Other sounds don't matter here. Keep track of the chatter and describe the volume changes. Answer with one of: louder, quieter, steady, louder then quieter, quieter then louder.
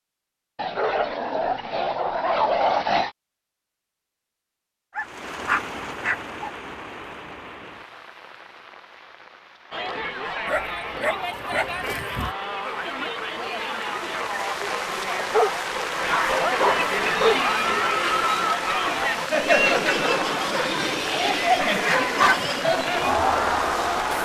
louder.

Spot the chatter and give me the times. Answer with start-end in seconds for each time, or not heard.
9.7-24.2.